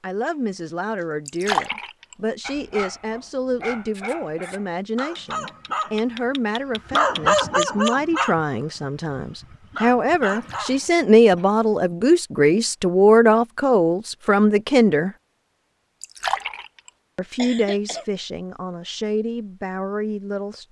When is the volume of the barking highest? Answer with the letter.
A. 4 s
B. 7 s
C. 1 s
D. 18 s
B.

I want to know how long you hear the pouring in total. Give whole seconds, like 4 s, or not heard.
2 s.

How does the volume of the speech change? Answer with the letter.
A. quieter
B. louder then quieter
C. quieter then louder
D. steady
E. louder
B.